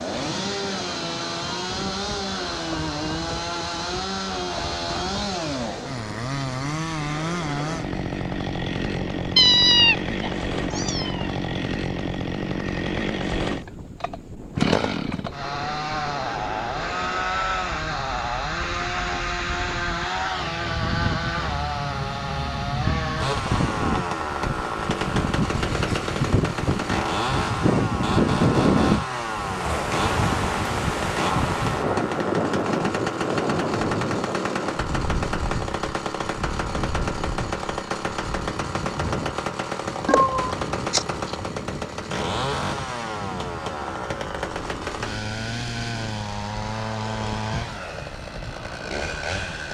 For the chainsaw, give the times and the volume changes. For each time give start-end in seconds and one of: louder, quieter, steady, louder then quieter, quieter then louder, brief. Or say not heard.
0.0-49.6 steady.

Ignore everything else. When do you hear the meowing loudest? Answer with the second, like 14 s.
10 s.